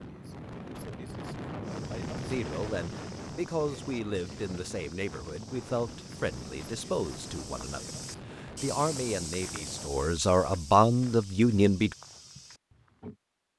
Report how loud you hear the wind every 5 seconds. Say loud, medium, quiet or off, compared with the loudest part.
loud, medium, off.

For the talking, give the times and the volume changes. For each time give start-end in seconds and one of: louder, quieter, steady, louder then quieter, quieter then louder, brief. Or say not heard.
2.2-11.9 louder.